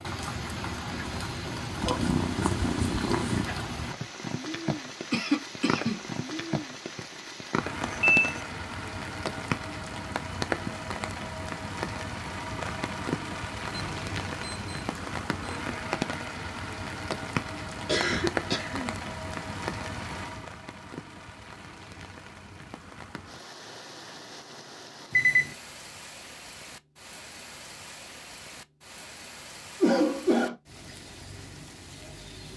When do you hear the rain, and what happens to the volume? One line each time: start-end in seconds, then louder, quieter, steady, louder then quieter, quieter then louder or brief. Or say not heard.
0.0-32.5 quieter.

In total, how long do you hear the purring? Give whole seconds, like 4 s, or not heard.
2 s.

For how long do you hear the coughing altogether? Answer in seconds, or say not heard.
3 s.